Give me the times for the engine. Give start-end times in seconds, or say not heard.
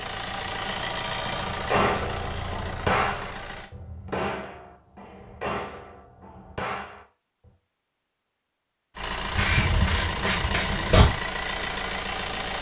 0.0-3.7, 8.9-12.5.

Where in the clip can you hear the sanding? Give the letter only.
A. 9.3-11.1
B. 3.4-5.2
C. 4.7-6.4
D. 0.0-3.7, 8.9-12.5
A.